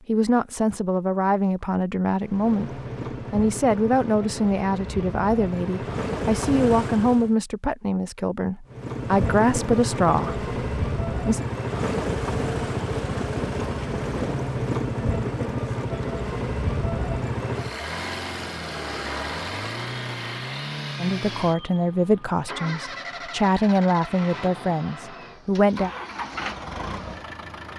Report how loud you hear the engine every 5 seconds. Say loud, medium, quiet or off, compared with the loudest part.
medium, loud, loud, loud, medium, medium.